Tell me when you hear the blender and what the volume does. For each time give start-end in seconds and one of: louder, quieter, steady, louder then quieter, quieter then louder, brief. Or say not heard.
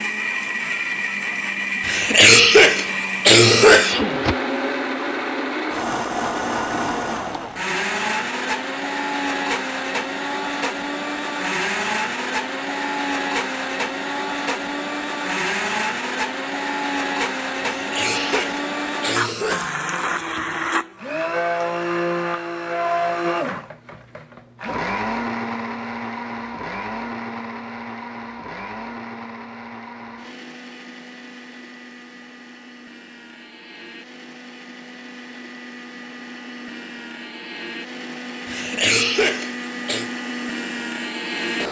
0.0-41.6 quieter.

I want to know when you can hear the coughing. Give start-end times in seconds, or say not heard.
1.9-4.4, 17.6-19.8, 38.5-40.1.